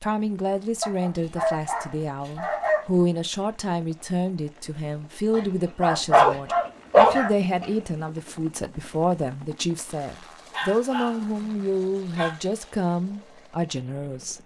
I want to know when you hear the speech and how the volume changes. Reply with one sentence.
The speech can be heard from 0.0 to 14.4 s, at a steady volume.